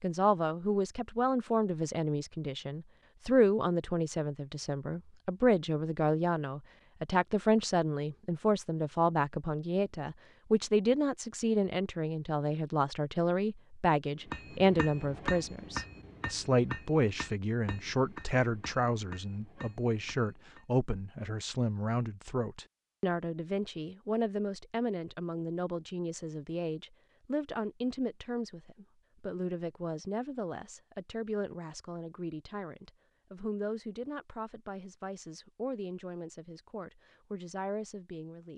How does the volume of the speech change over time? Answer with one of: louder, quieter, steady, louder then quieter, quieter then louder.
quieter.